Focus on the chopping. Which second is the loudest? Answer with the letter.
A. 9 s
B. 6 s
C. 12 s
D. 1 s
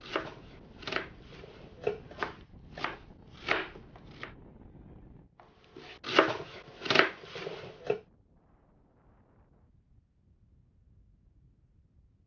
B.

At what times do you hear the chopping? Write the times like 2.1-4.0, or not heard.
0.0-4.3, 5.8-8.0.